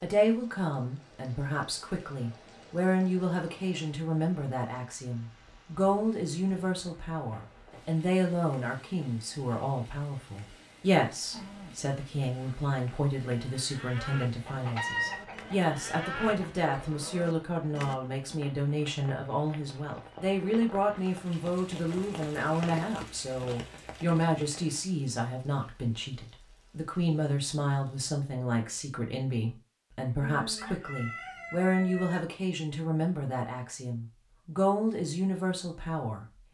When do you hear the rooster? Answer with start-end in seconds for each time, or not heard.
14.4-16.4, 30.2-32.2.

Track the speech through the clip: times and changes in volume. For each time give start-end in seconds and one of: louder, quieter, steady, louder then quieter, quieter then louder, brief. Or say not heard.
0.0-36.2 steady.